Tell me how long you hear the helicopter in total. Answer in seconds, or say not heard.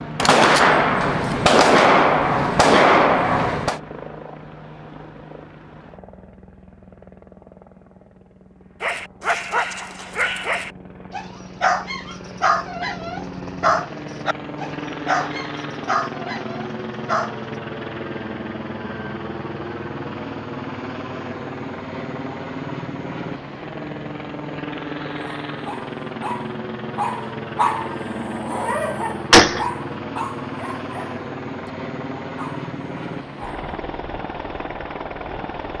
36 s.